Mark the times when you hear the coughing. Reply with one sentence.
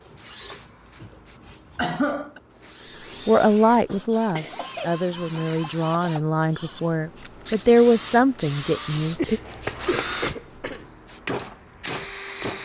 The coughing can be heard from 1.8 to 2.4 s, from 4.3 to 5.7 s and from 9.2 to 10.8 s.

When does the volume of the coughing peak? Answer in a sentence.
The loudest moment of the coughing is at 2 seconds.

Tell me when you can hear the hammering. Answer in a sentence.
You can hear the hammering from 9.4 to 12.6 s.